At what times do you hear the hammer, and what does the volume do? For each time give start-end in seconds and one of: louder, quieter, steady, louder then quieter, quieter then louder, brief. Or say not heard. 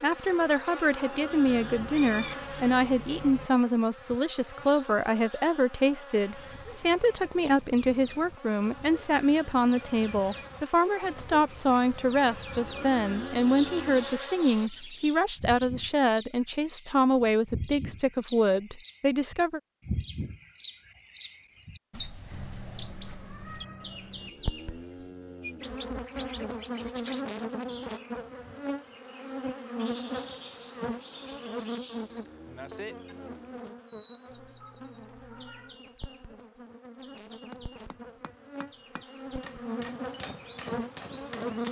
37.5-41.6 louder.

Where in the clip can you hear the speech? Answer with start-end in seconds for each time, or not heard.
0.0-19.6.